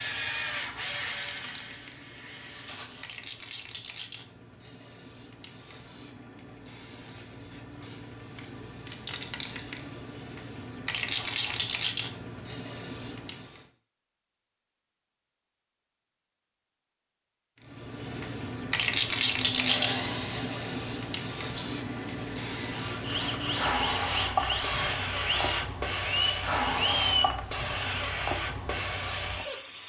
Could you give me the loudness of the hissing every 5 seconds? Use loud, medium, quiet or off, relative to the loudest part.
quiet, quiet, medium, loud, loud, loud.